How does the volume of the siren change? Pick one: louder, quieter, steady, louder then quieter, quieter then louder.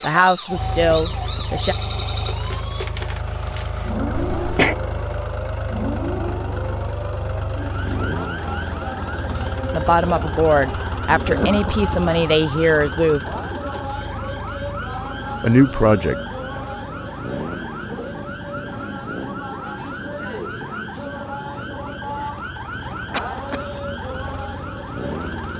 steady.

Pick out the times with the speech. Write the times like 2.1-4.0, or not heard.
0.0-1.8, 9.7-13.3, 15.4-16.1.